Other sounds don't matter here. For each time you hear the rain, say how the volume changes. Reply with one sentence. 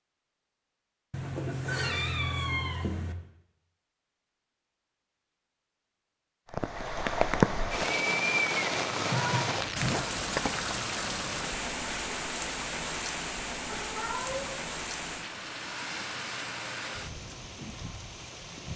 The rain can be heard from 6.5 to 18.7 s, getting quieter.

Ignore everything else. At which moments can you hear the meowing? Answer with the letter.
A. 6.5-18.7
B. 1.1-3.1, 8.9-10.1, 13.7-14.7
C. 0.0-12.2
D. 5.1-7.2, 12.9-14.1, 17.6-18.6
B.